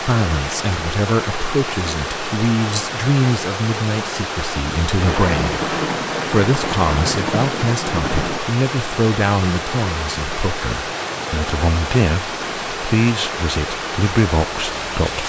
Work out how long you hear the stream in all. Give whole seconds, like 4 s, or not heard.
15 s.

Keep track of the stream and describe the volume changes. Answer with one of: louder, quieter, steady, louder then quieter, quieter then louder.
steady.